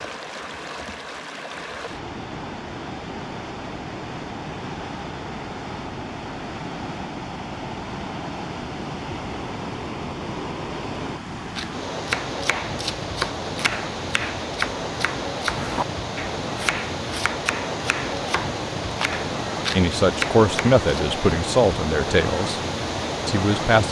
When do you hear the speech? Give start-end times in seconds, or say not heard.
19.7-22.6, 23.2-23.8.